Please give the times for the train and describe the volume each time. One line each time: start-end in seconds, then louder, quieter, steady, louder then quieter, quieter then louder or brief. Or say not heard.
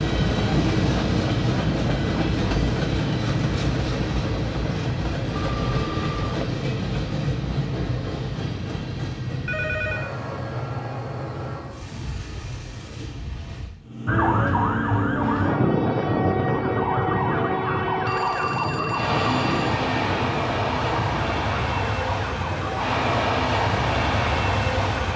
0.0-25.1 quieter then louder.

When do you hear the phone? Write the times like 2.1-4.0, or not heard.
5.3-6.5, 9.4-10.1, 18.1-19.9.